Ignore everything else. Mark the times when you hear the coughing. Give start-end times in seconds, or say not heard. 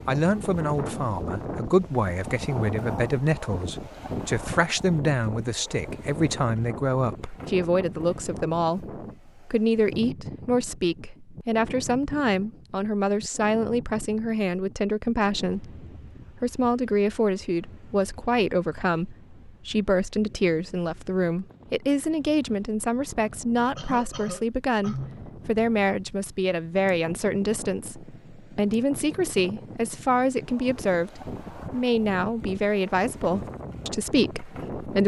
23.8-25.2.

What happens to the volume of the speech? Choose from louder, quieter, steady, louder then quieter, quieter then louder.
steady.